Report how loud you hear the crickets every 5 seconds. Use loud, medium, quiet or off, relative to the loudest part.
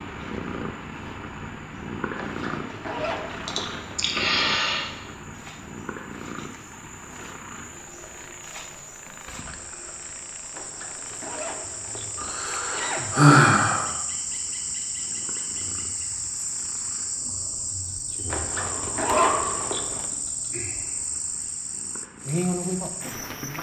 quiet, quiet, loud, loud, loud.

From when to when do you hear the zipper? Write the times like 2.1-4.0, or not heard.
2.1-4.0, 10.5-13.2, 18.2-20.1.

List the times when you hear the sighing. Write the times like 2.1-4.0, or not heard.
3.5-4.8, 12.2-13.8, 18.5-19.9.